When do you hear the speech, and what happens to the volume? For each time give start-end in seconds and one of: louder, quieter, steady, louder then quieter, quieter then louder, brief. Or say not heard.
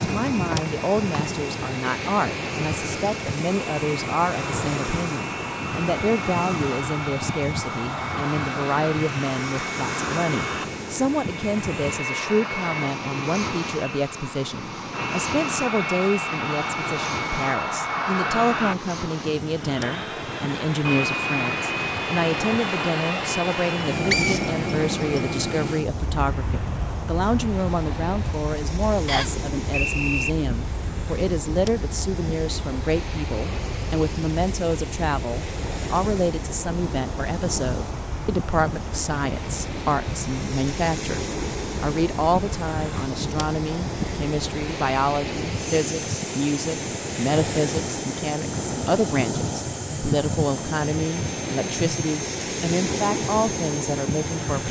0.0-54.6 steady.